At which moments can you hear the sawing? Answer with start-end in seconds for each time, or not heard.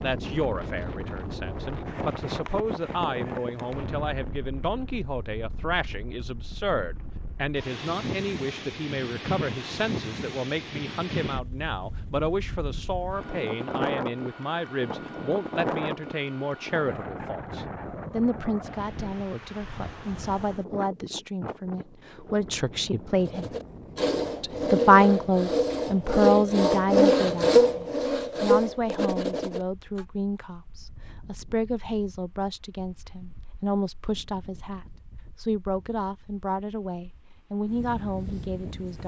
23.1-30.1.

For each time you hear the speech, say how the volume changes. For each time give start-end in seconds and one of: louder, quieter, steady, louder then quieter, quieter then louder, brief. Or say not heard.
0.0-23.5 steady
24.4-39.0 quieter.